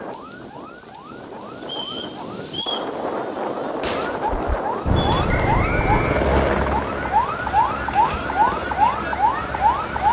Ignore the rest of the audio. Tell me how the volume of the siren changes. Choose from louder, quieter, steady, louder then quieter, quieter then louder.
louder.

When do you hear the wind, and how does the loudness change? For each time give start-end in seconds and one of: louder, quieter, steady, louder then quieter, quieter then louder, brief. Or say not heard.
0.0-5.8 louder.